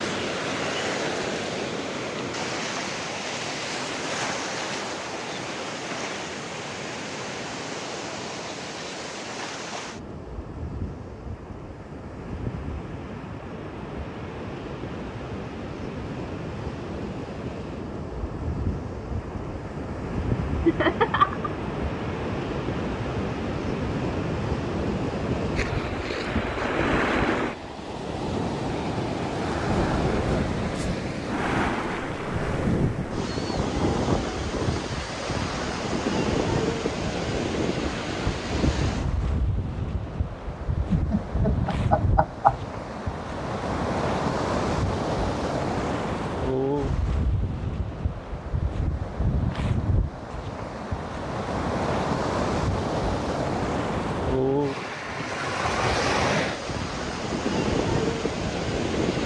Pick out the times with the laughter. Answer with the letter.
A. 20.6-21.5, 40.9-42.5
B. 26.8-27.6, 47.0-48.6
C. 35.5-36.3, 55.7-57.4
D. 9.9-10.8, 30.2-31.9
A.